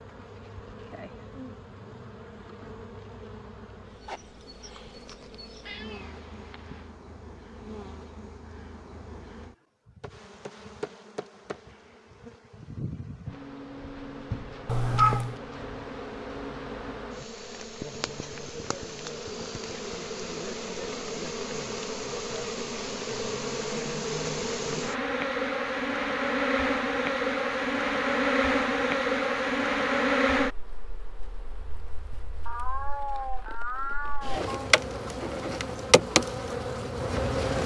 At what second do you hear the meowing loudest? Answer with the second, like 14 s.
15 s.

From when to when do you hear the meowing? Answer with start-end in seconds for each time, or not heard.
5.6-6.8, 14.7-15.3, 32.1-34.7.